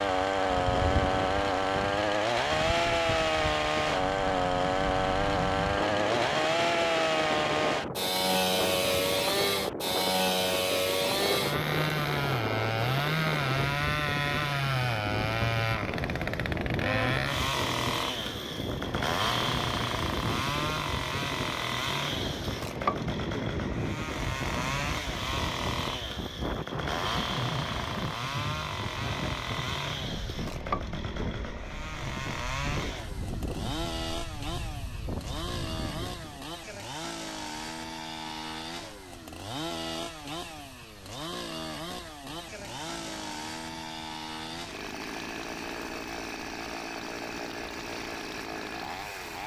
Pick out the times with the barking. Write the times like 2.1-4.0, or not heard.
not heard.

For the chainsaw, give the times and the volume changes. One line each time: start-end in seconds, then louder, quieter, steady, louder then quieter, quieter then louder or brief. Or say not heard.
0.0-49.4 quieter.